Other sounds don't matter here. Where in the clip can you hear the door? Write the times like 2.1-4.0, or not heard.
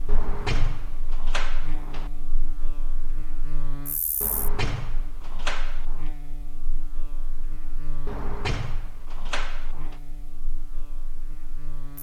0.1-2.1, 4.2-6.0, 8.1-9.9.